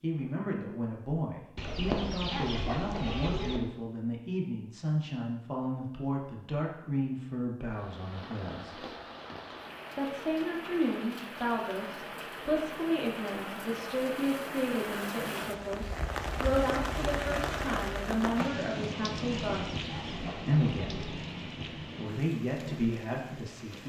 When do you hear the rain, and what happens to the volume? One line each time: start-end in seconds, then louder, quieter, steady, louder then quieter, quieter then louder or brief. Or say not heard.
7.7-23.8 louder then quieter.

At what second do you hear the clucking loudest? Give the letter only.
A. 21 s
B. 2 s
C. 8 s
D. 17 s
B.